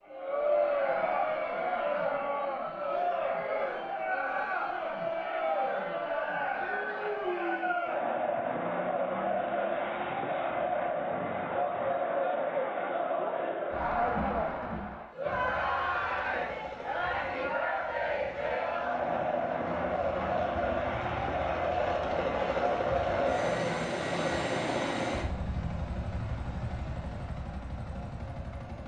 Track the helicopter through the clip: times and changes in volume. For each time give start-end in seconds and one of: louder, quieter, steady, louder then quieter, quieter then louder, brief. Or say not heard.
15.2-28.8 louder then quieter.